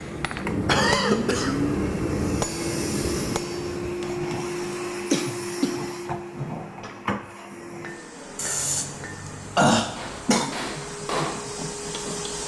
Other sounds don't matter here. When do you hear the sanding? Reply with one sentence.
You can't hear the sanding here.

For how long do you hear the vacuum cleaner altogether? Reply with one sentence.
You can hear the vacuum cleaner for 12 seconds altogether.